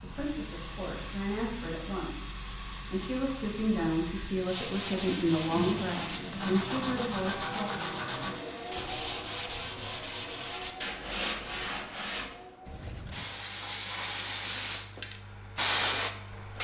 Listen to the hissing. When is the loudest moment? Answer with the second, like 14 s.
16 s.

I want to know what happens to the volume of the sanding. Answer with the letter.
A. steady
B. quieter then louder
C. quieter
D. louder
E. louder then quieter
A.